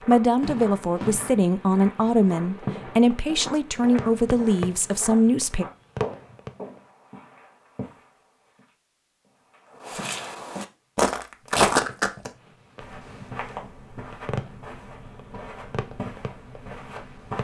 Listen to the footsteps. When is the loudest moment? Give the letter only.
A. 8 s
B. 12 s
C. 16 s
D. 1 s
B.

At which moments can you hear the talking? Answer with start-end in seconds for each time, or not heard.
0.1-5.7.